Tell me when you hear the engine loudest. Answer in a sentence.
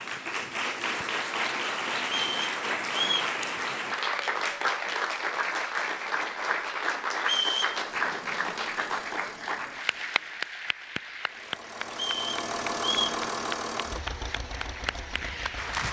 The volume of the engine peaks at 13 seconds.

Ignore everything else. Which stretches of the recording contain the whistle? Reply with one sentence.
The whistle can be heard from 2.1 to 3.4 s, from 7.2 to 7.8 s and from 11.9 to 13.2 s.